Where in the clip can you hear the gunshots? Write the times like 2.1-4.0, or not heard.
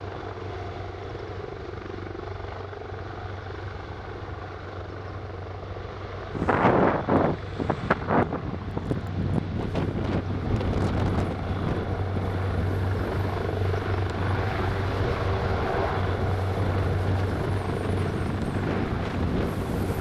not heard.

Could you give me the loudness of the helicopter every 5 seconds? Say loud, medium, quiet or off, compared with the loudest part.
medium, medium, loud, loud.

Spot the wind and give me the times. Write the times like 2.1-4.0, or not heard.
6.3-19.9.